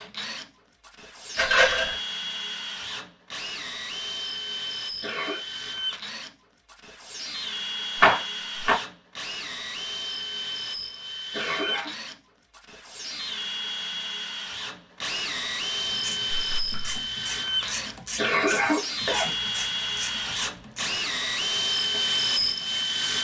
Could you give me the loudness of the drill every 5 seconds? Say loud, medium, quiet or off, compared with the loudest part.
medium, medium, medium, loud, loud.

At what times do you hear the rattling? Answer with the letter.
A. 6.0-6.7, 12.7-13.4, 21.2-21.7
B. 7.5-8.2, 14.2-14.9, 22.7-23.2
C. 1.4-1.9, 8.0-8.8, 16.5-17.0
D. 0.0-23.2
C.